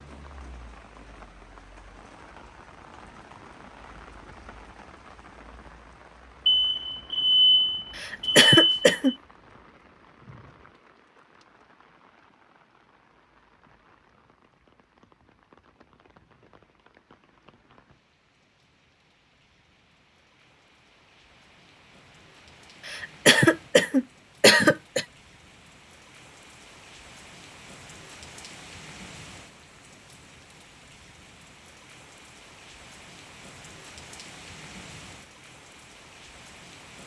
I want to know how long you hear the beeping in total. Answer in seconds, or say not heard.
3 s.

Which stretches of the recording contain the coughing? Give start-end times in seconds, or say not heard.
8.0-9.2, 22.9-25.1.